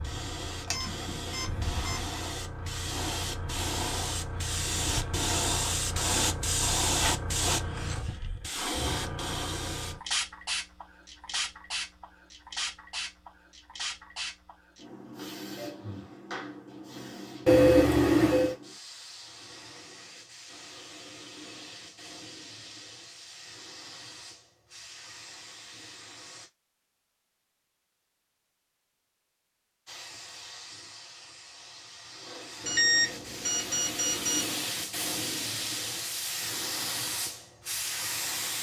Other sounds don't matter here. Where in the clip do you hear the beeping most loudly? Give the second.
18 s.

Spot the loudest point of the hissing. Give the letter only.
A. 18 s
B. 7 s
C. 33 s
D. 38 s
B.